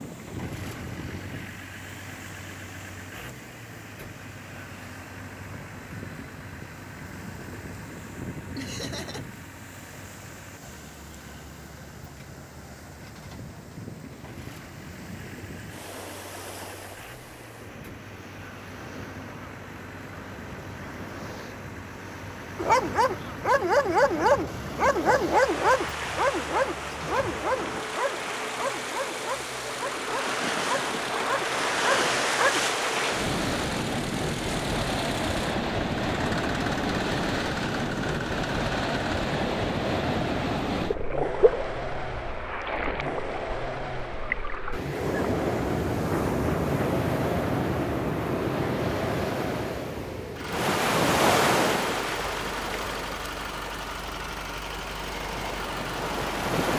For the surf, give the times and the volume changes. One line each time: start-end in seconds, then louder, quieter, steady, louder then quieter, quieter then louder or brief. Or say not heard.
0.0-56.7 louder.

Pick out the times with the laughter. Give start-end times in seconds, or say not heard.
8.6-9.2.